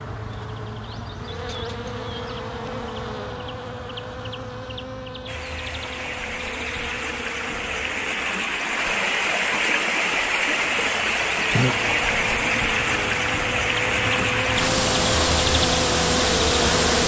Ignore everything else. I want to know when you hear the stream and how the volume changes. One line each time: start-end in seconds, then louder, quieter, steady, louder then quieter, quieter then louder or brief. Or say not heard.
5.2-17.0 louder.